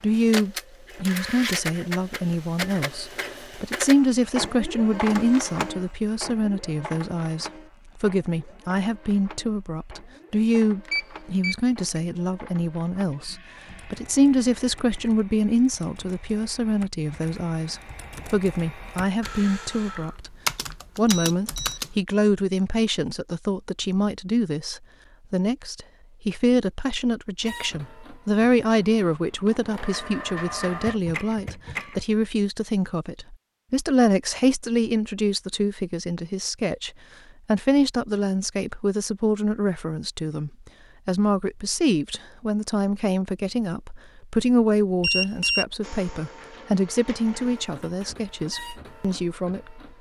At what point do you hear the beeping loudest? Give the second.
45 s.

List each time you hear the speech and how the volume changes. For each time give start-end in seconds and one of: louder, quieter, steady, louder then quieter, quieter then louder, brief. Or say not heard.
0.0-20.4 steady
20.9-49.8 steady.